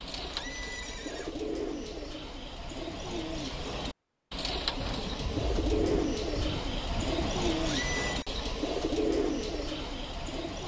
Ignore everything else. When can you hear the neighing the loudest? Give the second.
8 s.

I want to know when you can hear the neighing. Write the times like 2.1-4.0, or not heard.
0.2-1.4, 7.5-8.2.